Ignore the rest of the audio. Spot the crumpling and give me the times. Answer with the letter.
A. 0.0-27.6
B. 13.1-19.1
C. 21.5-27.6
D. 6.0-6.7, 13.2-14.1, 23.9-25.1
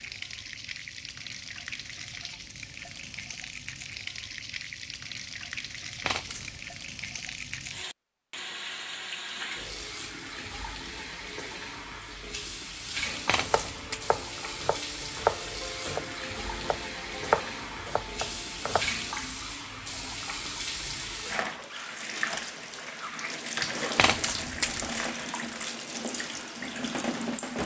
D.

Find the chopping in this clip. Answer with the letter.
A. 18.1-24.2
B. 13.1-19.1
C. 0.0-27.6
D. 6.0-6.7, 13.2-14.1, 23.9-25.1
B.